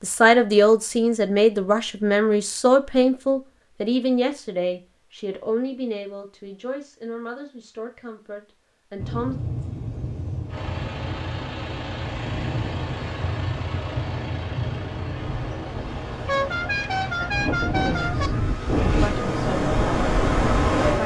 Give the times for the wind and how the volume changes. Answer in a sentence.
The wind can be heard from 8.9 to 21.0 s, getting louder.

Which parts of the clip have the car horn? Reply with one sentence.
You can hear the car horn from 16.2 to 18.3 s.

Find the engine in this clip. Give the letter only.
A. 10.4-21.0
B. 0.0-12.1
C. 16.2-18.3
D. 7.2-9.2
A.